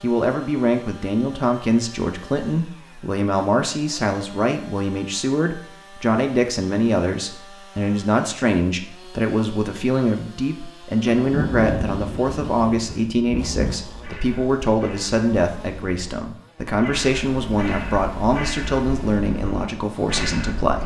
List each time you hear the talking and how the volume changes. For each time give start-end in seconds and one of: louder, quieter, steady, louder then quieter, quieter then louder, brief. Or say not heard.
0.0-20.8 steady.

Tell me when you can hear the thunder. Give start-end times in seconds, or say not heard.
11.2-13.8.